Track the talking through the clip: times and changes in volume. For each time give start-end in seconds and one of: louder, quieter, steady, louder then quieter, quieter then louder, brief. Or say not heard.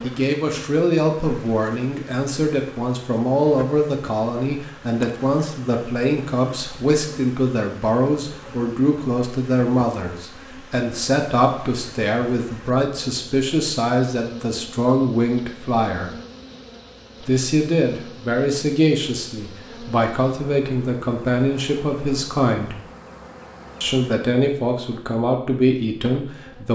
0.0-16.1 steady
17.2-22.8 steady
23.8-26.7 brief.